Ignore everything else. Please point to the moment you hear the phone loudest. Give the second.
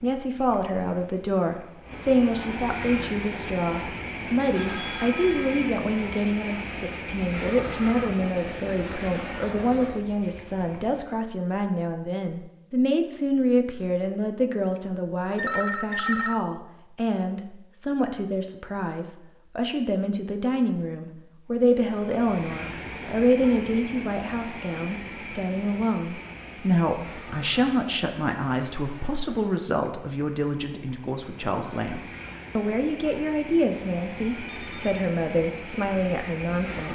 16 s.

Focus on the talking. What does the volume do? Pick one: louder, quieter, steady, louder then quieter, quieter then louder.
steady.